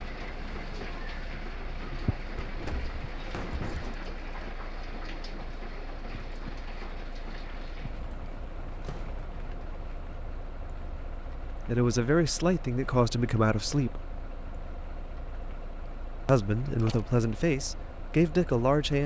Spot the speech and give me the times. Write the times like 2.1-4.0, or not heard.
11.6-14.0, 16.2-19.0.